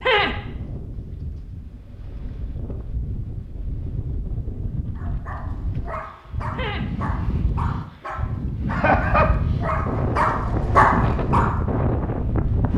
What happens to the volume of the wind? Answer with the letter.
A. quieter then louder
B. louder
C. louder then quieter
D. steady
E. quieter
B.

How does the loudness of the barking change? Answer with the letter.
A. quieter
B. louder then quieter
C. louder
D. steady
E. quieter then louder
C.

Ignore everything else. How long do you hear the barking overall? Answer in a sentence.
You can hear the barking for 7 seconds altogether.